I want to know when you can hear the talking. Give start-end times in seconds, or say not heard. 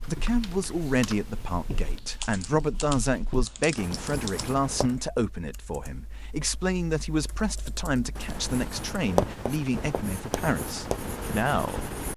0.0-11.9.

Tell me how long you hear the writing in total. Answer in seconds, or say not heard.
9 s.